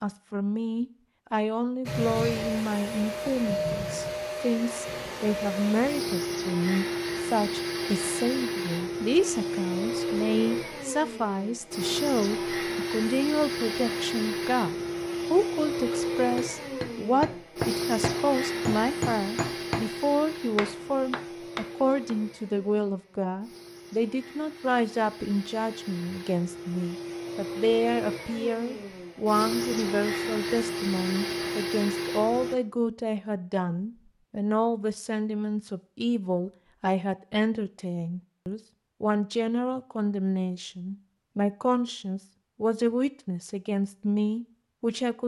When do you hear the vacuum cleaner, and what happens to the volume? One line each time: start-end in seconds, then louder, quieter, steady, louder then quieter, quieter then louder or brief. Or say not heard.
1.9-32.5 quieter then louder.